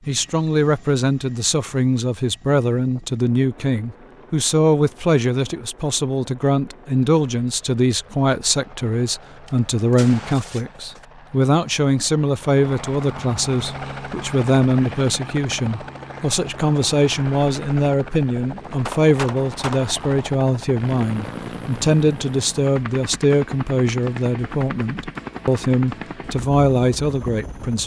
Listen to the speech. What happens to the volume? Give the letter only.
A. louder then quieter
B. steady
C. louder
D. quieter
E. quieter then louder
B.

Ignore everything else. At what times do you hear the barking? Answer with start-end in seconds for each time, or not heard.
not heard.